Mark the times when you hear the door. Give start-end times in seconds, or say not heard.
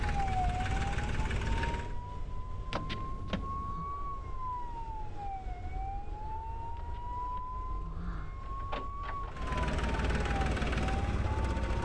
2.7-3.9, 6.8-9.3.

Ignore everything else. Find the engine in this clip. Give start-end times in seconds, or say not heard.
0.0-1.9, 9.3-11.8.